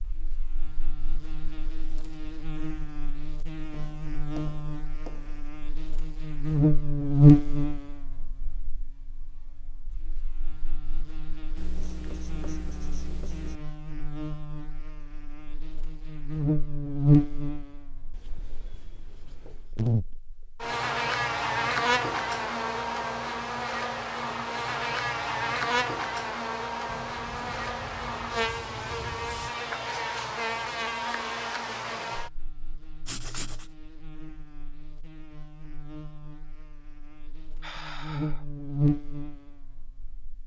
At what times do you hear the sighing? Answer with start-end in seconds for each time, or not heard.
37.6-38.5.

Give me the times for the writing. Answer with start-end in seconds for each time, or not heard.
3.7-5.4, 11.6-13.6, 18.1-19.8, 26.9-29.5, 33.0-33.6.